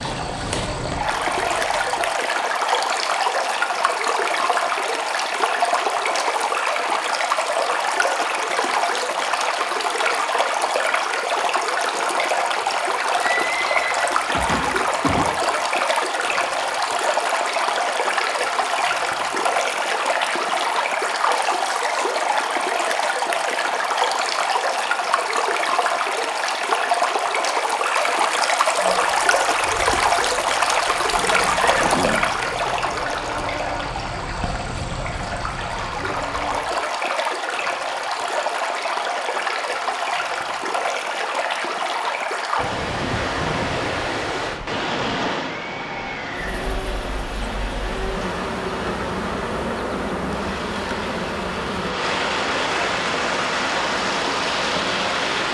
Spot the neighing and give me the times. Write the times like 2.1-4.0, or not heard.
13.2-15.2, 31.1-32.2, 45.5-46.6.